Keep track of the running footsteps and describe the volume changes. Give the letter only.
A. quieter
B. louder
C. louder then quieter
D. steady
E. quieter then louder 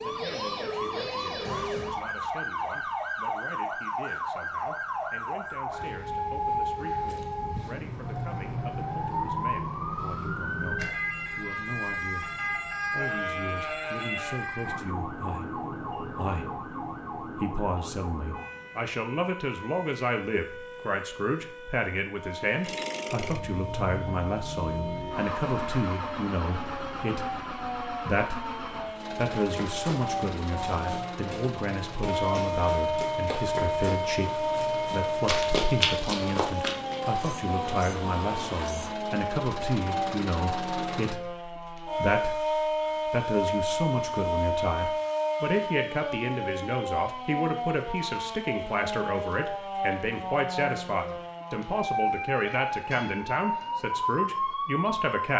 B.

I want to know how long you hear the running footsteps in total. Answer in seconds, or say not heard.
8 s.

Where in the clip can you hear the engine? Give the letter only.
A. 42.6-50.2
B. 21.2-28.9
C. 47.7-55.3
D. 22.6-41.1
D.